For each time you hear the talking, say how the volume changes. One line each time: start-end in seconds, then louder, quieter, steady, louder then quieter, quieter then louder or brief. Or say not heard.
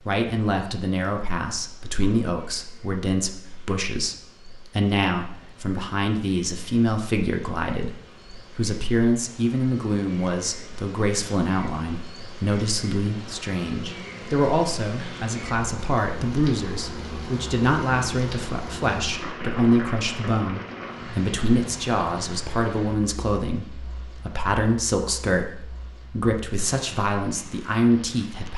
0.0-28.5 steady.